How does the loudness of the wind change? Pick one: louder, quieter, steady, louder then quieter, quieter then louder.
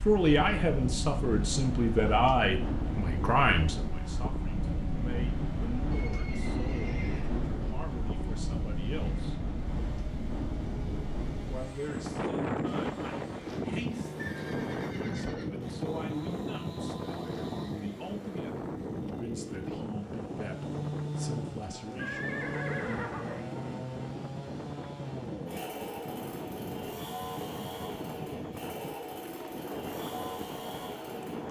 quieter.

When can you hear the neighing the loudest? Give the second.
23 s.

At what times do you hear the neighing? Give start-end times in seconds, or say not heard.
5.9-7.3, 14.2-15.7, 21.9-23.4.